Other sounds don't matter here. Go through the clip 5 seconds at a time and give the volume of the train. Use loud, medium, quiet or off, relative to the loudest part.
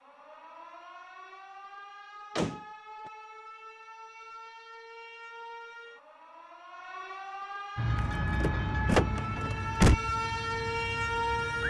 off, loud, medium.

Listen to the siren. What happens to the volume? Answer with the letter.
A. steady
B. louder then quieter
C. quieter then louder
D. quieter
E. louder
E.